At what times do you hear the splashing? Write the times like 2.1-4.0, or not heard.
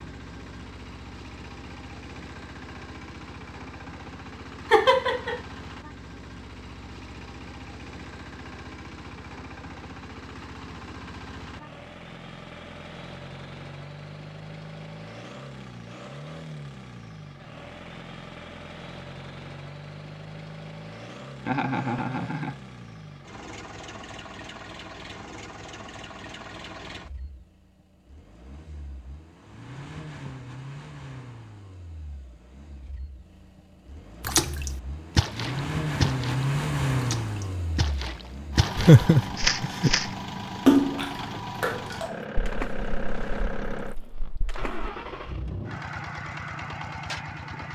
34.2-44.9.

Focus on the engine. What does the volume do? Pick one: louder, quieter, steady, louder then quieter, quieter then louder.
louder.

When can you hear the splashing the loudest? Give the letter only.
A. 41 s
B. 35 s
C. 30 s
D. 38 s
A.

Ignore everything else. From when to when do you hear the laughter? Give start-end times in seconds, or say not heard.
4.7-5.4, 21.4-22.6, 38.8-39.9.